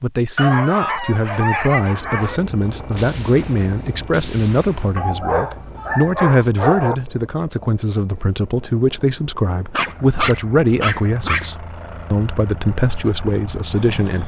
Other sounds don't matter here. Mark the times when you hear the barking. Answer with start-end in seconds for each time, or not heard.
0.3-2.4, 5.0-7.0, 9.7-11.5.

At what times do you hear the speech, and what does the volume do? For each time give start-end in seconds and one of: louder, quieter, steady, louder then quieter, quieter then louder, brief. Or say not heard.
0.0-14.2 steady.